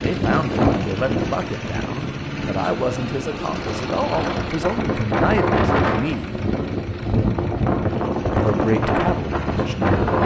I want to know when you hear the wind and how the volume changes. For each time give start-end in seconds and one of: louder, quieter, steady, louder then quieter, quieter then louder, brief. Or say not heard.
0.0-10.2 quieter then louder.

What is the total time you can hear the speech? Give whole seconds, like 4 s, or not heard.
8 s.